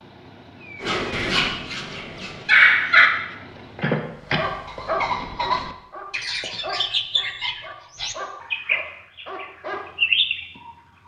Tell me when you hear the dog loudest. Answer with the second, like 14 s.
3 s.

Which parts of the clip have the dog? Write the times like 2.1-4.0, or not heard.
0.8-3.1, 3.8-9.9.